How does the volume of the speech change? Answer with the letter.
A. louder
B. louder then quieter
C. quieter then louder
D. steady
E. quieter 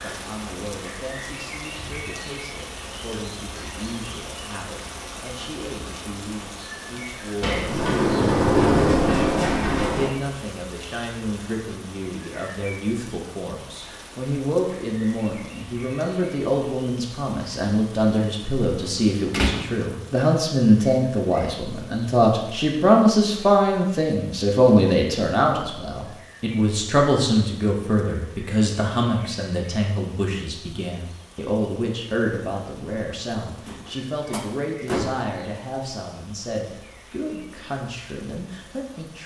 B.